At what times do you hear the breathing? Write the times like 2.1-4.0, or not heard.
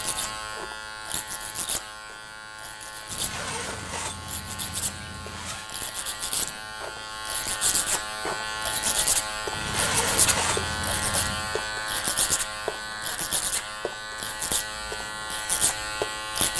not heard.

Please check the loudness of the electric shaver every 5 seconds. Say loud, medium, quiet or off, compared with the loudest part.
medium, loud, loud, loud.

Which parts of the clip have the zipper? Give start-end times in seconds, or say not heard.
3.1-5.7, 9.5-11.6.